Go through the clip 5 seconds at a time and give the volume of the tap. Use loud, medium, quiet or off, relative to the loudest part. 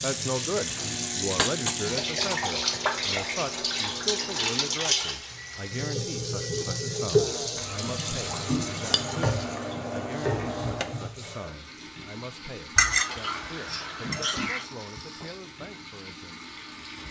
loud, loud, medium, quiet.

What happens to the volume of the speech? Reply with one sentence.
The loudness of the speech goes down.